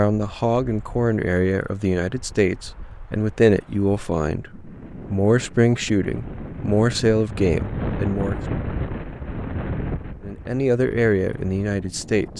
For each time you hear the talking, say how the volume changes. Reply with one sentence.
You can hear the talking from 0.0 to 8.3 s, at a steady volume; and briefly from 10.2 to 12.3 s.